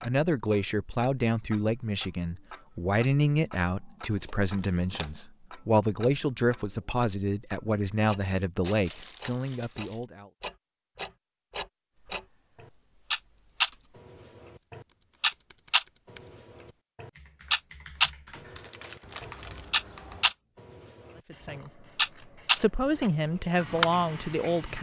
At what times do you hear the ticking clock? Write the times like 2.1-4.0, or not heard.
0.0-22.6, 23.4-24.7.